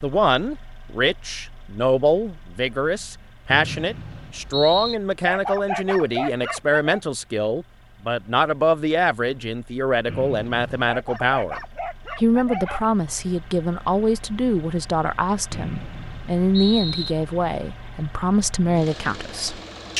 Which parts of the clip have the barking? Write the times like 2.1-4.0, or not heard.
5.2-7.0, 10.8-12.8.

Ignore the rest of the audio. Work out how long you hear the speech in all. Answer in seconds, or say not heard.
19 s.